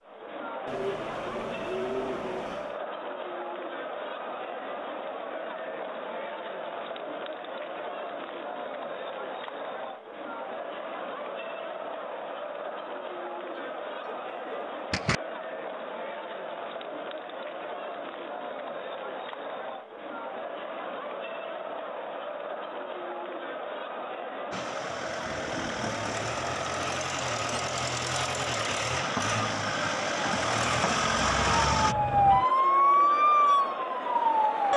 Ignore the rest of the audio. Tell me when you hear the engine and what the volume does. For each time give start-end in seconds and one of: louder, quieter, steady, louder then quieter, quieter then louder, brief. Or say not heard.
24.5-31.9 louder.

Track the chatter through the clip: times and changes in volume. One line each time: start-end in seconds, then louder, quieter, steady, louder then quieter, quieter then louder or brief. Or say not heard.
0.0-34.7 steady.